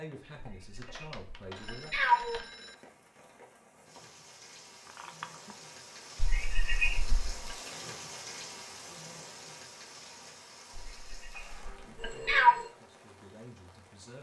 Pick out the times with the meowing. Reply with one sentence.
You can hear the meowing from 0.4 to 2.4 s, from 6.2 to 7.3 s and from 10.8 to 12.6 s.